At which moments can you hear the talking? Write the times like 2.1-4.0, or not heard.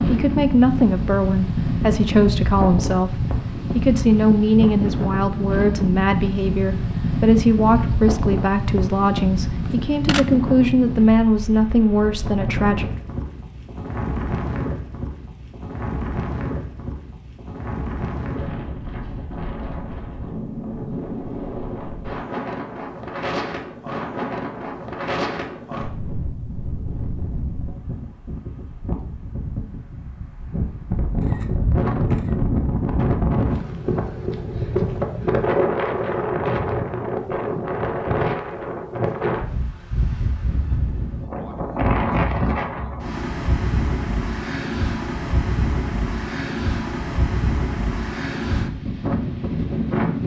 0.0-12.9.